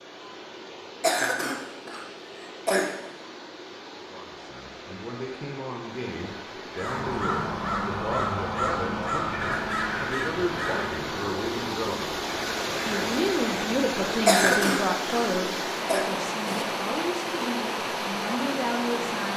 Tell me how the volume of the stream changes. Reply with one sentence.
The loudness of the stream goes up.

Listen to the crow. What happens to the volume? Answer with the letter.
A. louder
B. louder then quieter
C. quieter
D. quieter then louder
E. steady
C.